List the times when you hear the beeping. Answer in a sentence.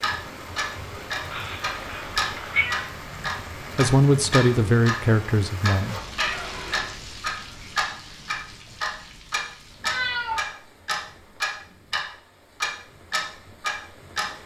You can't hear the beeping here.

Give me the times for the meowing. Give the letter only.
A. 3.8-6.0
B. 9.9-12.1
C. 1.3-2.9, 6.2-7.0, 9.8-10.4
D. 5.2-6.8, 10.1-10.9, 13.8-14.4
C.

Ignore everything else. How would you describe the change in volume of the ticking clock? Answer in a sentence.
The volume of the ticking clock stays about the same.